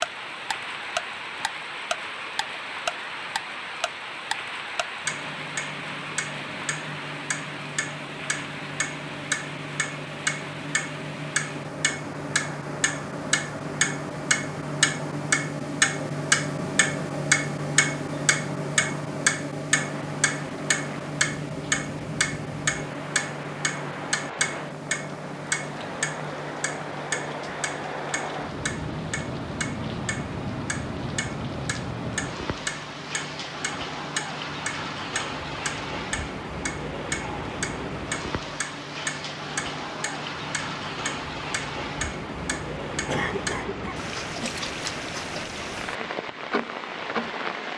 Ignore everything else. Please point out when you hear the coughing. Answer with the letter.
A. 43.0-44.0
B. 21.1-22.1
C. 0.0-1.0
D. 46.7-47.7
A.